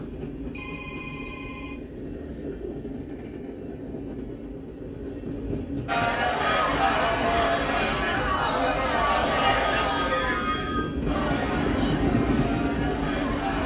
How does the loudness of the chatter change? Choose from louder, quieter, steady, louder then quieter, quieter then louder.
quieter.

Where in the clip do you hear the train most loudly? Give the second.
12 s.